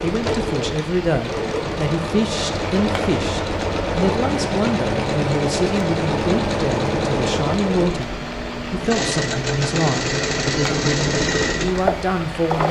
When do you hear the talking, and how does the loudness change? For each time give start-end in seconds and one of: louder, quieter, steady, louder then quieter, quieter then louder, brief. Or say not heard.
0.0-12.6 steady.